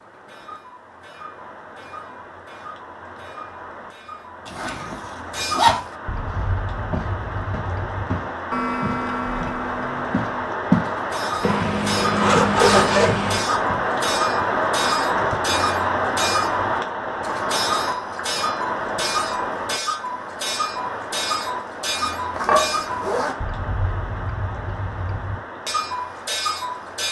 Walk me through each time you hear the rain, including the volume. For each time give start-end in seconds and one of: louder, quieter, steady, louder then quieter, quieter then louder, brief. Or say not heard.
0.0-27.0 louder then quieter.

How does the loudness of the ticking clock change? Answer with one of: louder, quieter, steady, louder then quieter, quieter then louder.
louder.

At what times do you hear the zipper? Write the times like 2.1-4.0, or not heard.
4.5-5.8, 11.4-13.4, 22.4-23.4.